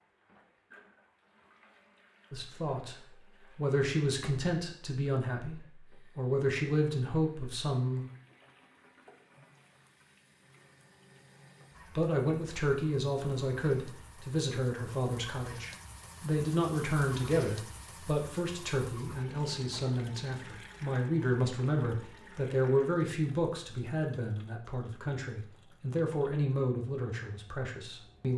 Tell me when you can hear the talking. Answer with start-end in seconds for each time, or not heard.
2.3-8.1, 11.9-28.3.